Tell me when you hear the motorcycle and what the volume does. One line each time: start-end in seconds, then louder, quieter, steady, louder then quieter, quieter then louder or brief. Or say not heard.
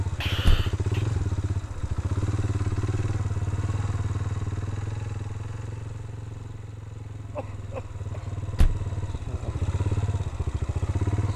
0.0-11.3 quieter then louder.